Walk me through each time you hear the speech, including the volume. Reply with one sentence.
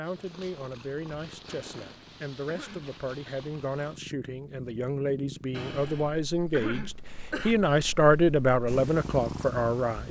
You can hear the speech from 0.0 to 10.0 s, getting louder.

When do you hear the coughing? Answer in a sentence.
The coughing can be heard from 1.4 to 3.3 s and from 5.5 to 7.5 s.